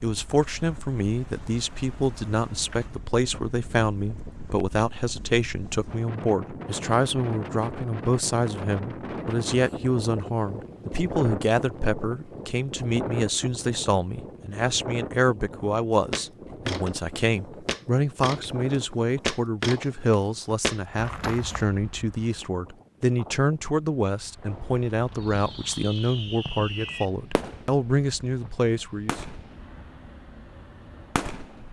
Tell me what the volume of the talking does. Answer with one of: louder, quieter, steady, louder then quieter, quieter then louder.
steady.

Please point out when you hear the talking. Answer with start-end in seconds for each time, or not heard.
0.0-29.2.